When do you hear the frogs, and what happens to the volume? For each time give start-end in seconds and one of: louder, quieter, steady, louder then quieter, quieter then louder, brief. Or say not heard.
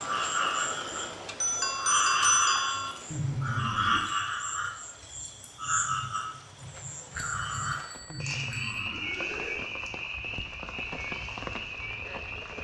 0.0-12.5 quieter.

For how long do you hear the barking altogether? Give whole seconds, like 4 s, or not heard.
not heard.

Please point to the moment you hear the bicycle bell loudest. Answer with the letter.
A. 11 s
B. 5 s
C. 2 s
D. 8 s
C.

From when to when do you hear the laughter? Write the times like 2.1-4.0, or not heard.
3.1-4.1, 8.1-9.6.